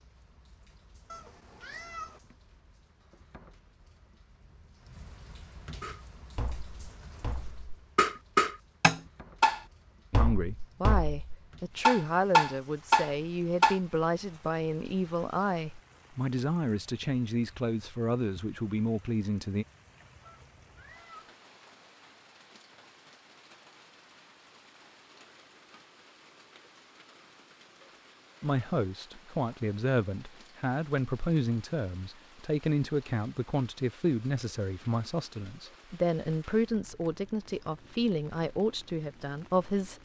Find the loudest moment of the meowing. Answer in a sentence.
The volume of the meowing peaks at 2 seconds.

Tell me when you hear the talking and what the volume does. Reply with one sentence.
You can hear the talking from 10.1 to 19.6 s, at a steady volume; and from 28.4 to 39.9 s, at a steady volume.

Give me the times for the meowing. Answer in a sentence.
You can hear the meowing from 1.1 to 2.2 s and from 20.2 to 21.4 s.